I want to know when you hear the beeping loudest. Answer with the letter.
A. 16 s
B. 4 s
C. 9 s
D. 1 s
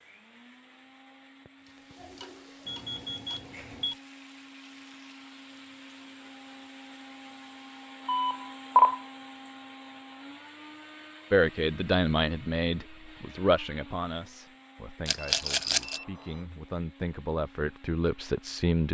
C.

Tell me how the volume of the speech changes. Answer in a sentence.
The volume of the speech goes down, then up.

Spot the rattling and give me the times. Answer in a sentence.
The rattling can be heard from 15.1 to 16.0 s.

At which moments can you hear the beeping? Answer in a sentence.
The beeping can be heard from 2.6 to 4.0 s, from 8.1 to 9.0 s and from 15.2 to 16.4 s.